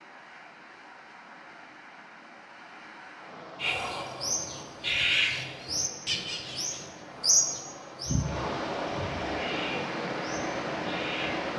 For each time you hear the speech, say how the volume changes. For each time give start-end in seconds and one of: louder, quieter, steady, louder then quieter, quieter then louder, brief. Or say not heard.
not heard.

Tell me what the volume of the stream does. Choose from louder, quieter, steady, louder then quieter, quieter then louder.
louder.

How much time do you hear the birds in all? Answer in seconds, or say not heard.
8 s.